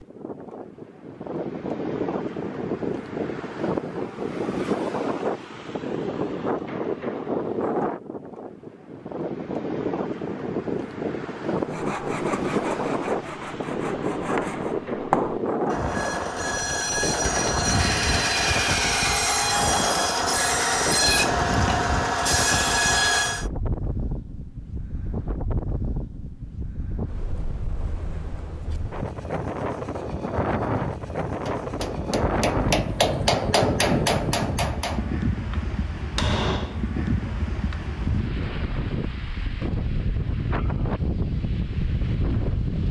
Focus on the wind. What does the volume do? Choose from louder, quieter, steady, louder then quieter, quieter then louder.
steady.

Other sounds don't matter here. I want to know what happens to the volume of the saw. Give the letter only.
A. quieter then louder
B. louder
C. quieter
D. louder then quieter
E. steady
B.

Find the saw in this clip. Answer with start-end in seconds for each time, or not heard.
11.6-23.4.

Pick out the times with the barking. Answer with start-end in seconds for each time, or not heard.
not heard.